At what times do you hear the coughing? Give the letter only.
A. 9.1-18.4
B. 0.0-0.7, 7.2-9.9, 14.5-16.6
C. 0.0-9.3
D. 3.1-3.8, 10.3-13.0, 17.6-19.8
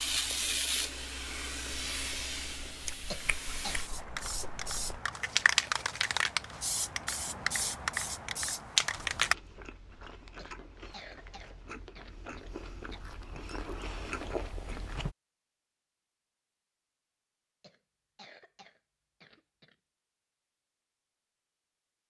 D.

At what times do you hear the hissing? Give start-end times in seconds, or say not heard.
0.0-9.3.